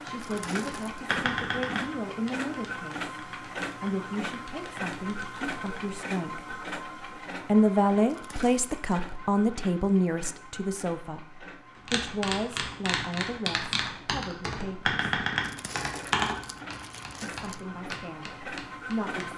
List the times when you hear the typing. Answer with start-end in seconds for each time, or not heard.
0.1-5.9, 11.8-19.3.